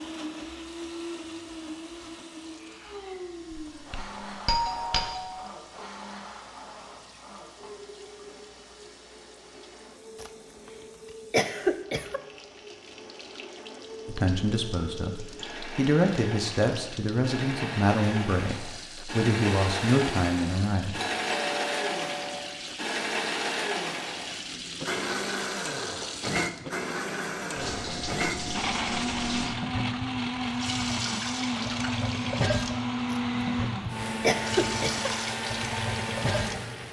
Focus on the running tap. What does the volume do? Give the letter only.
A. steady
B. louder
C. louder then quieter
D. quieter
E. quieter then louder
B.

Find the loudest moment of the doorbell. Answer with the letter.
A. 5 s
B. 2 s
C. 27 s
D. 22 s
A.